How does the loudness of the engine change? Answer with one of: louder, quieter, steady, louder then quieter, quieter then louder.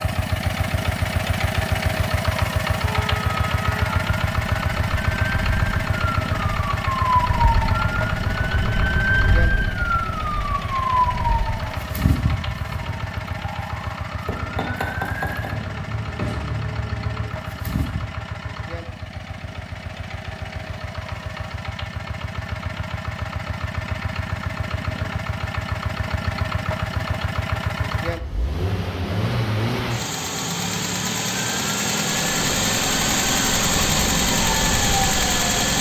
quieter then louder.